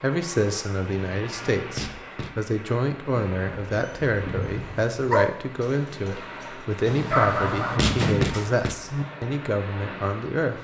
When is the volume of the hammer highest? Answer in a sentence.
The volume of the hammer peaks at 8 seconds.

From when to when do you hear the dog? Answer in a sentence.
You can hear the dog from 3.2 to 8.0 s.